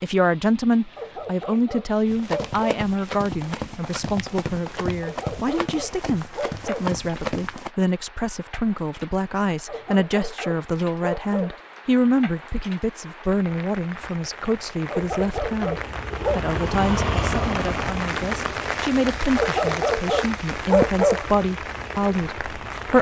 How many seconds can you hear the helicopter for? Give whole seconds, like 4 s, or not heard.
8 s.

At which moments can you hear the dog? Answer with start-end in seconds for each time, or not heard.
0.9-2.6, 5.0-6.9, 9.7-11.6, 14.9-16.4, 19.4-21.2.